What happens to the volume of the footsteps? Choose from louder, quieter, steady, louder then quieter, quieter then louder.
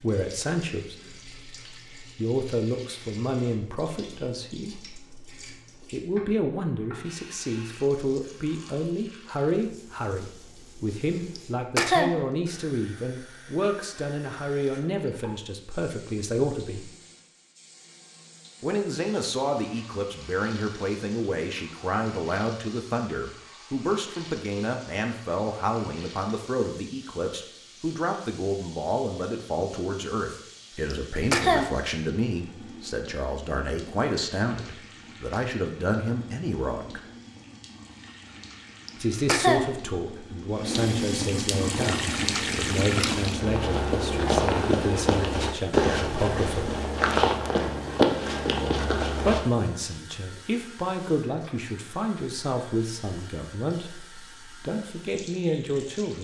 louder.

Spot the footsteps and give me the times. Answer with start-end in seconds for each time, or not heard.
41.6-49.4.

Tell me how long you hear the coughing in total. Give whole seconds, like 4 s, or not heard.
2 s.